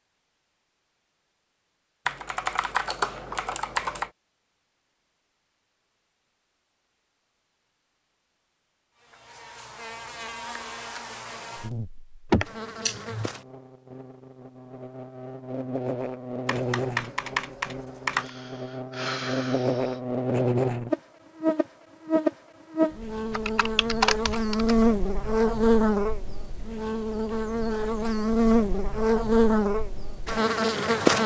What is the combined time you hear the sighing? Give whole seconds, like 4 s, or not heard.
3 s.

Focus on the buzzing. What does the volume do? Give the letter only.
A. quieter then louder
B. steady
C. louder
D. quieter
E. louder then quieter
C.